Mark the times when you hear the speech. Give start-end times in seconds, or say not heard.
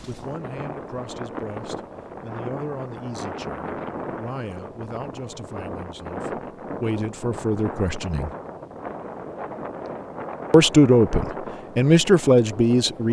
0.1-8.3, 10.5-13.0.